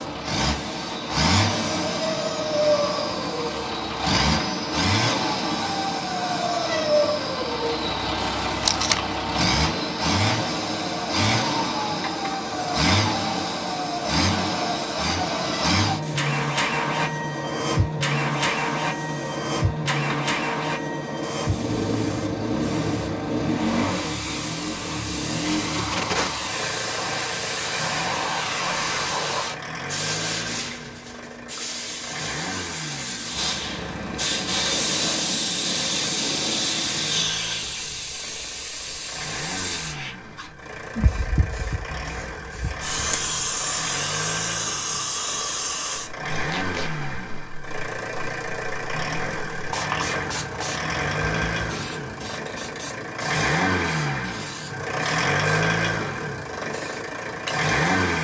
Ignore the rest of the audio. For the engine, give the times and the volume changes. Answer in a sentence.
The engine can be heard from 0.0 to 58.1 s, getting quieter then louder.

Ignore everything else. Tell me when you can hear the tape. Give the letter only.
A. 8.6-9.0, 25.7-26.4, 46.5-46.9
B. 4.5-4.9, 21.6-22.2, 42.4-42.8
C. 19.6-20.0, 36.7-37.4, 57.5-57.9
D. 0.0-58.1
A.